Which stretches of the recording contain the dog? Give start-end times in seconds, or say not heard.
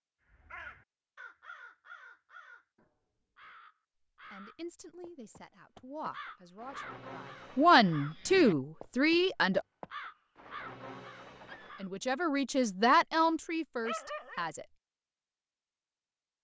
13.8-14.4.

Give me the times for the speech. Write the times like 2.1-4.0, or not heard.
4.3-9.6, 11.8-14.7.